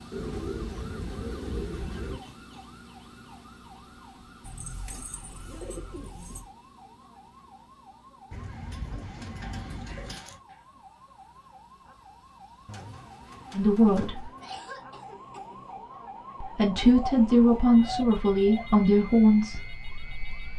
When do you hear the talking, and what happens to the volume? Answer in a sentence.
You can hear the talking briefly from 13.6 to 14.3 s; and from 16.4 to 20.5 s, getting quieter.